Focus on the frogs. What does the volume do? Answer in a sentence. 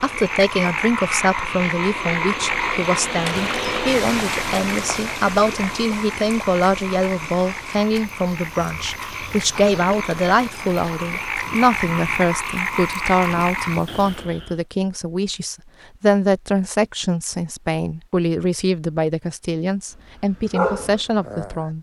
The volume of the frogs goes down, then up.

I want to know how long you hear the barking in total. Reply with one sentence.
The barking can be heard for 2 seconds in total.